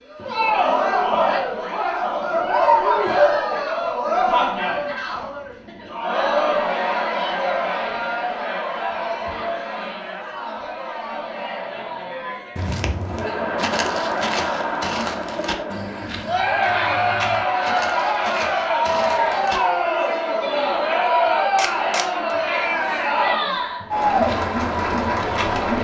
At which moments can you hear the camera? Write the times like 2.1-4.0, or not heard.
21.6-22.4.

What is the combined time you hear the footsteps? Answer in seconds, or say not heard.
9 s.